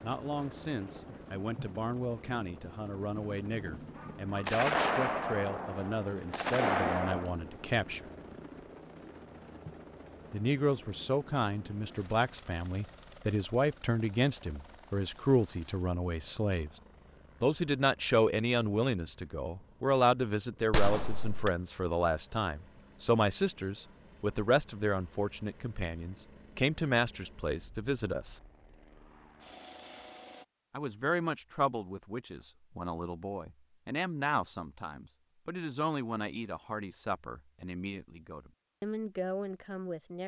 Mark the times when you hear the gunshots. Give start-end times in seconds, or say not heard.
3.1-7.3, 20.7-21.5.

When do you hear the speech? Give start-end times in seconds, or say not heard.
0.0-8.1, 10.3-16.7, 17.4-28.4, 30.7-40.2.